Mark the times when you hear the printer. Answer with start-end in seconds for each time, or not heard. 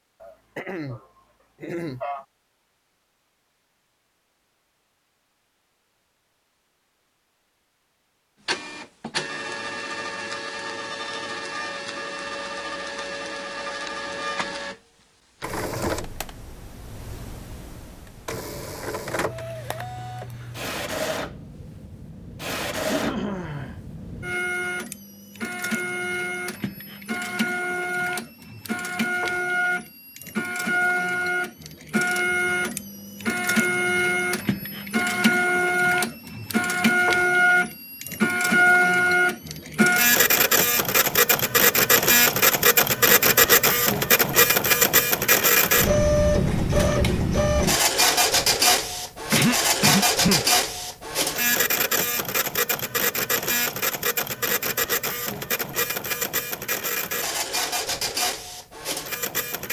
8.4-59.6.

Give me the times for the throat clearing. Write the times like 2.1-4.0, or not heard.
0.2-2.2, 22.9-23.8, 49.3-50.5.